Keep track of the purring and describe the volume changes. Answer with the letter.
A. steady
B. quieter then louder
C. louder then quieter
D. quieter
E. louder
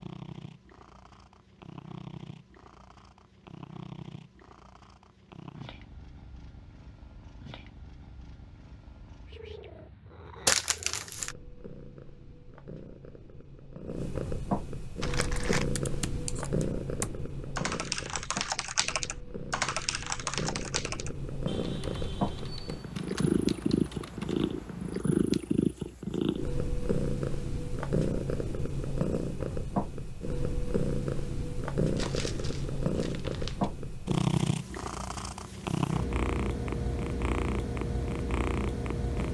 E.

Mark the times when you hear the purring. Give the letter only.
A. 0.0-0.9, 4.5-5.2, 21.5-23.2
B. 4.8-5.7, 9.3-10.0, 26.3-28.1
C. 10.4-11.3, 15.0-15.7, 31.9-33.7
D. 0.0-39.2
D.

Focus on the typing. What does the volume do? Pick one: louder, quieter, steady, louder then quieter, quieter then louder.
quieter.